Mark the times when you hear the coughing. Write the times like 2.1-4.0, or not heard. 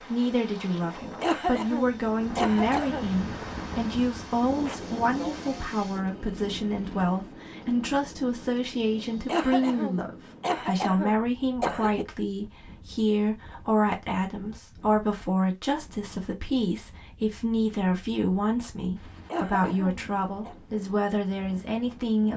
1.2-3.0, 9.2-12.1, 19.2-20.6.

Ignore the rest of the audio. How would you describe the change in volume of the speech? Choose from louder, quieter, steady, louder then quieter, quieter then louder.
steady.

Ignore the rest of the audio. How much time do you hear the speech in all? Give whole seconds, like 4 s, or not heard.
22 s.